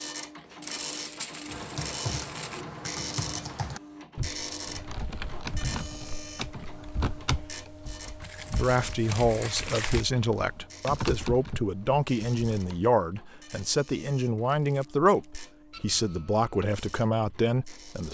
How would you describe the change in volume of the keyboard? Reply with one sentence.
The volume of the keyboard goes down, then up.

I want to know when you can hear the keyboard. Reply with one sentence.
You can hear the keyboard from 1.4 to 12.8 s.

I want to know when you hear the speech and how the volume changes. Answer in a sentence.
You can hear the speech from 8.5 to 18.0 s, at a steady volume.